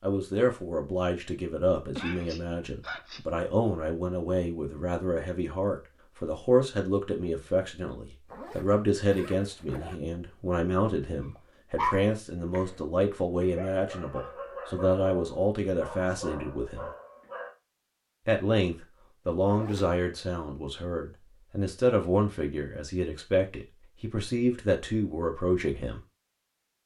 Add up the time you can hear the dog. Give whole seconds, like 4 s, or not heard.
6 s.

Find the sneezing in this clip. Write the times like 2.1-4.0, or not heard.
1.9-3.2.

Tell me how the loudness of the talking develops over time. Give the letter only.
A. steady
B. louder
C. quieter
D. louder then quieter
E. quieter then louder
A.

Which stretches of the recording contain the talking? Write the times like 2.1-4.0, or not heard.
0.0-16.9, 18.2-26.0.